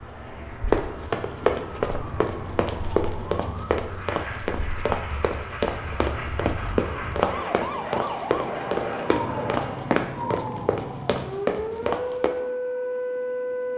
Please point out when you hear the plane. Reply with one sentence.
You can hear the plane from 0.0 to 10.1 s.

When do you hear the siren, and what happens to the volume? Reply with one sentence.
The siren can be heard from 0.0 to 13.7 s, getting louder.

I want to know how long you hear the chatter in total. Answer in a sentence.
The chatter can't be heard in this clip.